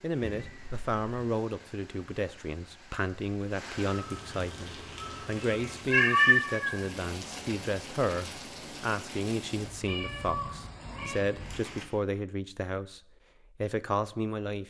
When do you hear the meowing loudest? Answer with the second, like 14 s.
6 s.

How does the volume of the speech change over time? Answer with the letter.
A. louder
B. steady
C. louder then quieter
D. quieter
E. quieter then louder
B.